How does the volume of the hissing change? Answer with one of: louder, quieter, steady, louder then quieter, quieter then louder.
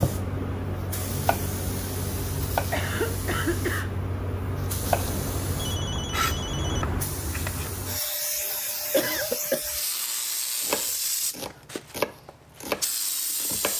steady.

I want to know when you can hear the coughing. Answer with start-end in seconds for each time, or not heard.
2.5-3.9, 8.6-9.6.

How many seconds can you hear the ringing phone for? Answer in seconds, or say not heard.
2 s.